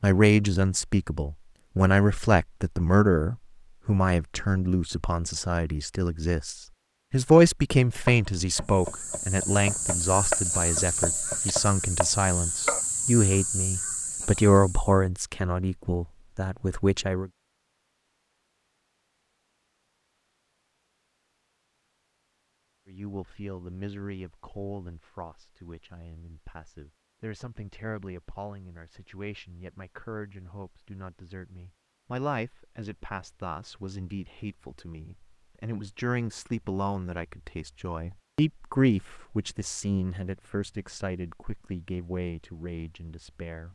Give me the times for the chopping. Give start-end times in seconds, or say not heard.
8.1-12.8.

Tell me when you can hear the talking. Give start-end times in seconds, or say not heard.
0.0-17.3, 22.9-43.6.